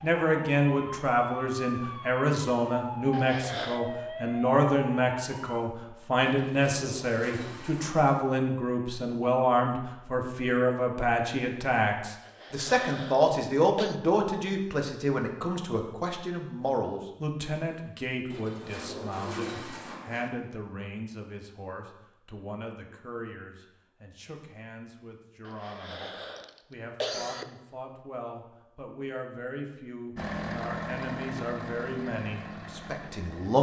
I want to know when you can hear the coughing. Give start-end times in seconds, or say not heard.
3.1-3.8, 12.2-13.9, 25.4-27.4.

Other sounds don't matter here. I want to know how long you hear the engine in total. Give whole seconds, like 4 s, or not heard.
3 s.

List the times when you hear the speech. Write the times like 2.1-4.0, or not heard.
0.0-33.5.